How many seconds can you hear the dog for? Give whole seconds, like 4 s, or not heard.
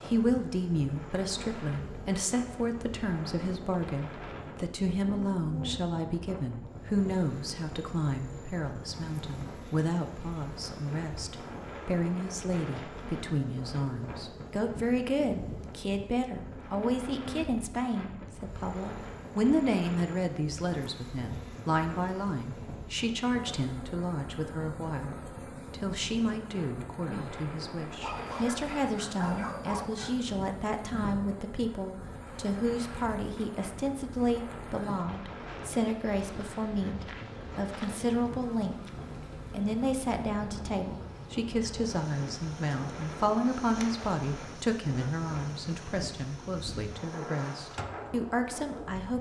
2 s.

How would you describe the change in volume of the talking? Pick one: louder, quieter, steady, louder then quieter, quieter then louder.
steady.